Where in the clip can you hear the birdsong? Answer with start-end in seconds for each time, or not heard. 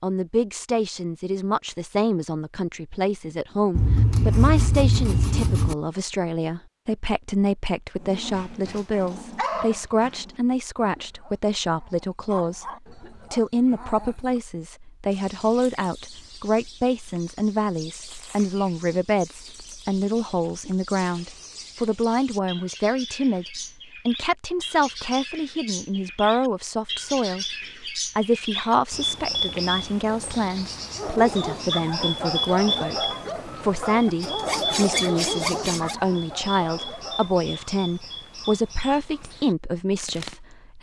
15.1-40.5.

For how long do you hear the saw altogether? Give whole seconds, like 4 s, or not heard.
4 s.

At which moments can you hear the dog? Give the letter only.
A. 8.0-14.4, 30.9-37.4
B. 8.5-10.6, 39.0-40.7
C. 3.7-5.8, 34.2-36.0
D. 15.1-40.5
A.